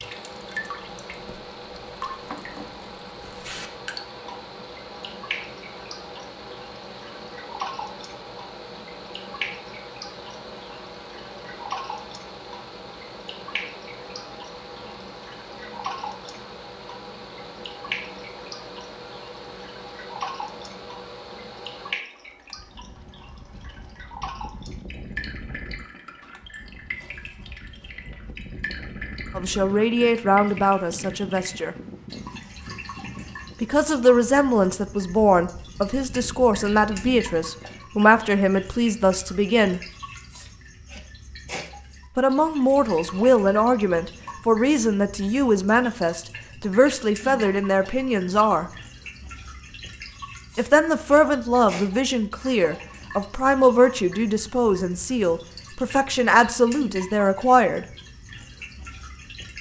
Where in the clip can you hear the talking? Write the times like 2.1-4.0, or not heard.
29.4-31.8, 33.6-39.8, 42.1-48.6, 50.5-57.9.